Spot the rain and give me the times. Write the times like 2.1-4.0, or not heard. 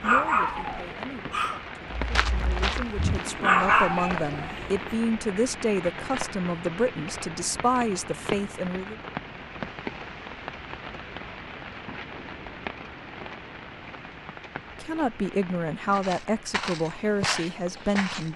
0.0-18.3.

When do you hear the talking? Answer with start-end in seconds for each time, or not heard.
0.0-8.9, 14.8-18.3.